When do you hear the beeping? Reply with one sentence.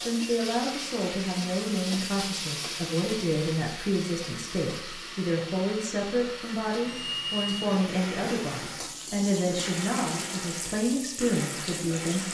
You can hear the beeping from 6.8 to 8.0 s.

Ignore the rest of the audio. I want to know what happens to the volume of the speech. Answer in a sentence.
The loudness of the speech stays about the same.